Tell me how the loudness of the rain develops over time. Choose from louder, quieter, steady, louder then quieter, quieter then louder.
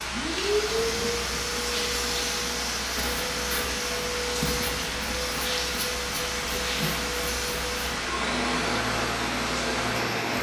steady.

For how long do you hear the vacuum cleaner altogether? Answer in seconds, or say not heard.
10 s.